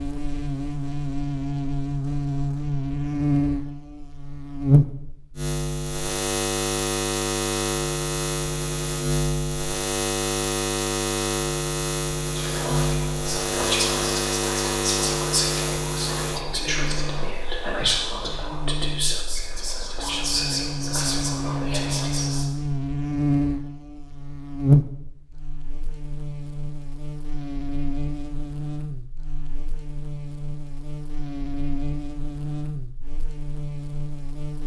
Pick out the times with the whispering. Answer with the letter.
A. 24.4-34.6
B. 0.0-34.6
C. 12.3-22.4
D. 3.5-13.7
C.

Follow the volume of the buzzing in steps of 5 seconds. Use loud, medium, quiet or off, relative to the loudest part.
loud, loud, loud, medium, loud, medium, medium.